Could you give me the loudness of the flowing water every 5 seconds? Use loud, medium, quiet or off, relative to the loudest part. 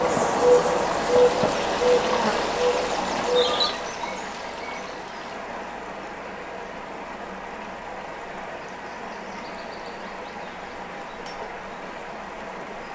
loud, medium, medium.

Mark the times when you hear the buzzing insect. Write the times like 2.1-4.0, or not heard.
0.0-3.8.